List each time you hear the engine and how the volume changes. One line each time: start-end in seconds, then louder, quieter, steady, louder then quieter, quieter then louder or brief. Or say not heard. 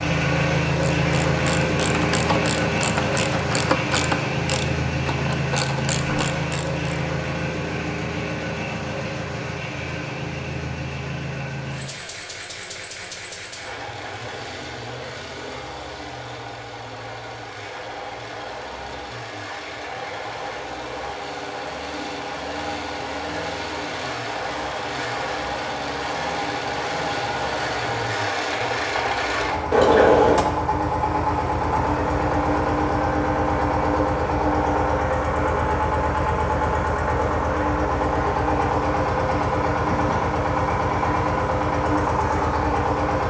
0.0-43.2 quieter then louder.